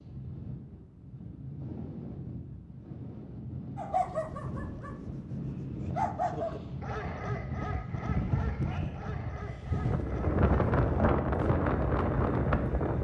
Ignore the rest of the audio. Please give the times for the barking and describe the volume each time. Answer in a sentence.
You can hear the barking from 3.8 to 10.8 s, getting louder then quieter.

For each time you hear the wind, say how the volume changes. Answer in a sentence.
You can hear the wind from 0.0 to 12.9 s, getting louder.